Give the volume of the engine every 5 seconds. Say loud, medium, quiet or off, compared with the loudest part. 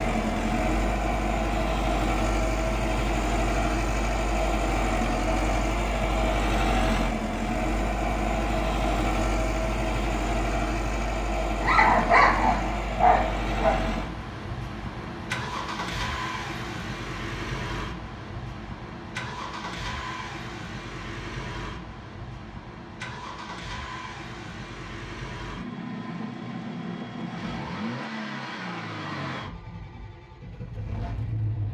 loud, loud, loud, medium, medium, medium, medium.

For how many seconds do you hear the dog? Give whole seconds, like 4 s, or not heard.
2 s.